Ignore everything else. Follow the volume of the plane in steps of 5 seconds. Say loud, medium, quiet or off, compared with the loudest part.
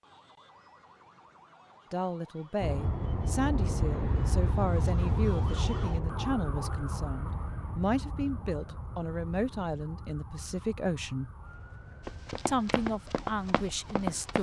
loud, medium, quiet.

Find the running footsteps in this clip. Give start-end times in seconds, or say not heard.
12.0-14.3.